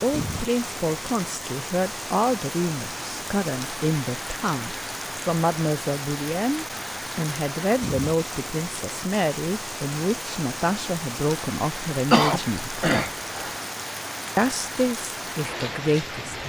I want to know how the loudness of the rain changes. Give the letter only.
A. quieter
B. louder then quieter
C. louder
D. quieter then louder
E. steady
E.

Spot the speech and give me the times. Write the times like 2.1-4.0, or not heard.
0.0-12.8, 14.3-16.4.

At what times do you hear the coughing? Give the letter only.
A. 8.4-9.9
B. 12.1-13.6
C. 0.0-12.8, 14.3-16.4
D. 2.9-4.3
B.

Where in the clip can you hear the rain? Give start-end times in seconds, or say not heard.
0.0-16.4.